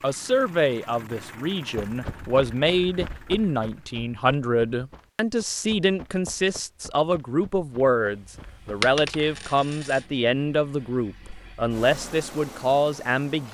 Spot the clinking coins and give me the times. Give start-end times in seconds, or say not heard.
8.8-10.1.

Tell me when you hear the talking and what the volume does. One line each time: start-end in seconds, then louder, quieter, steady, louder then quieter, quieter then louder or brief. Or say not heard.
0.0-13.5 steady.